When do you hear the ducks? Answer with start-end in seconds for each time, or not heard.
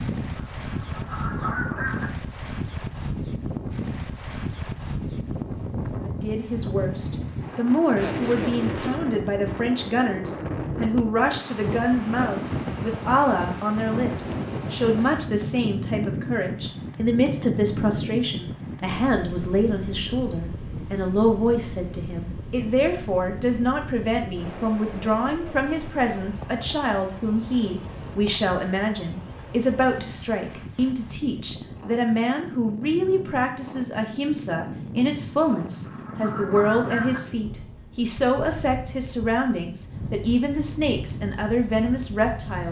0.3-2.1, 35.5-37.2.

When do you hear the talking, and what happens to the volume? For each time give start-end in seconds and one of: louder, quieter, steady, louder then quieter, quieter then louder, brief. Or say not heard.
6.0-42.6 steady.